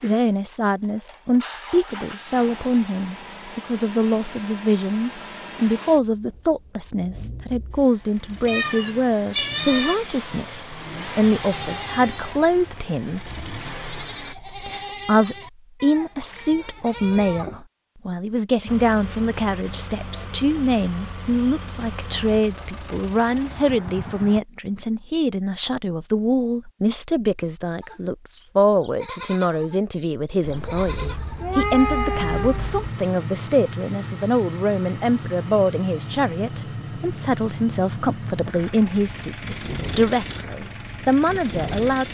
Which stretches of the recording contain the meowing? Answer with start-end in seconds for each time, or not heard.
8.4-9.9, 30.4-32.9.